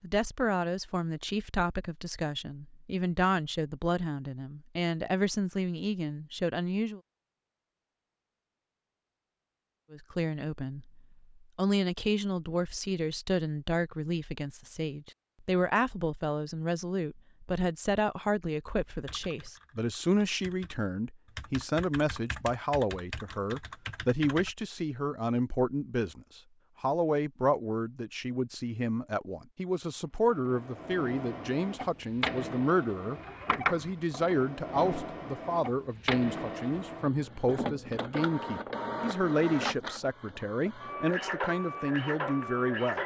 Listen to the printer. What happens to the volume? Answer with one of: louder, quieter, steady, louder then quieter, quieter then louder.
steady.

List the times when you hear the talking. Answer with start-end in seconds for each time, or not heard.
0.0-7.0, 9.9-43.0.